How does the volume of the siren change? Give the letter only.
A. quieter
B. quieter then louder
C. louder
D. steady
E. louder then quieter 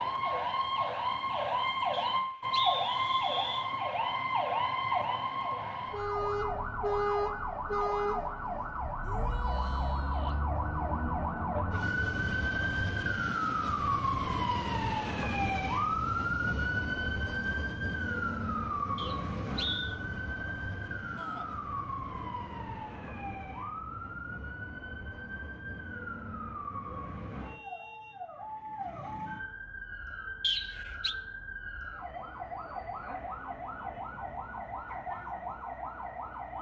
A.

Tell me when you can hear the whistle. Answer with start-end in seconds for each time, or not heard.
1.9-3.7, 18.9-19.9, 30.4-31.1.